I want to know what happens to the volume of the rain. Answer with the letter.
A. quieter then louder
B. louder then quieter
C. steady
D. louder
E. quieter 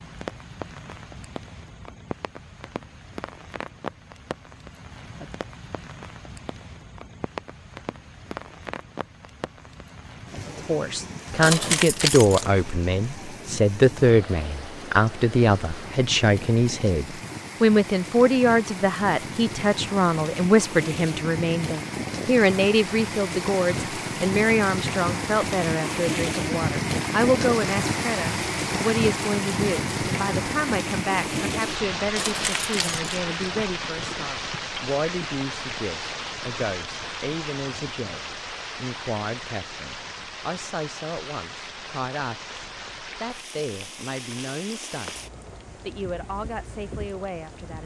B.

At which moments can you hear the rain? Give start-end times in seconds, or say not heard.
0.0-47.8.